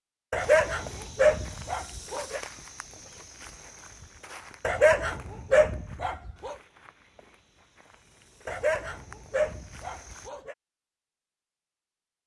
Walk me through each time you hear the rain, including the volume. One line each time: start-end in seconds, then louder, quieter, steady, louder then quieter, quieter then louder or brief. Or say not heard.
not heard.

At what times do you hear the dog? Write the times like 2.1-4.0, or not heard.
0.3-2.4, 4.6-6.5, 8.4-10.6.